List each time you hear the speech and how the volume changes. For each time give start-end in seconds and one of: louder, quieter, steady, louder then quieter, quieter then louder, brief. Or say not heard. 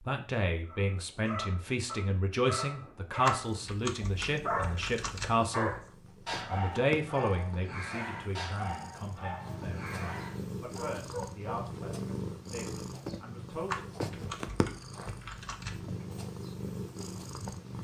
0.0-13.8 quieter.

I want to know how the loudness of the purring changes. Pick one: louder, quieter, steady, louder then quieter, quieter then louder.
louder.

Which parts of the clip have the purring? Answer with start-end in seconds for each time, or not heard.
3.4-17.7.